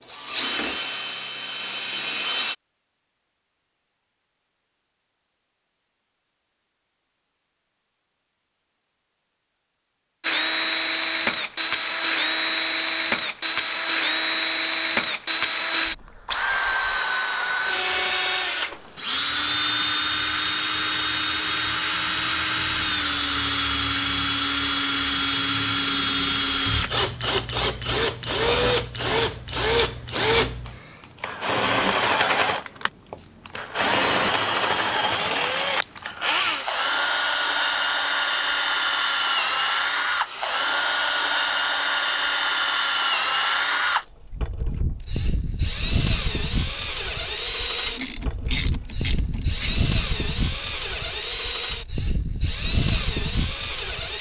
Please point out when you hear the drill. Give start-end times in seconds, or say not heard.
0.1-2.5, 10.2-54.1.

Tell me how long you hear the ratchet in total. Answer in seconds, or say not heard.
2 s.